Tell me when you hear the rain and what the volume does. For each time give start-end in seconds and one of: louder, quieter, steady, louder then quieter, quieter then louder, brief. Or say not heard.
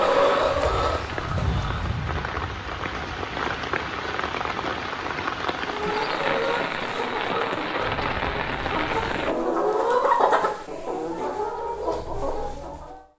0.0-9.3 steady.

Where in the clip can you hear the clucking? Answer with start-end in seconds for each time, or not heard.
0.0-2.0, 5.6-13.0.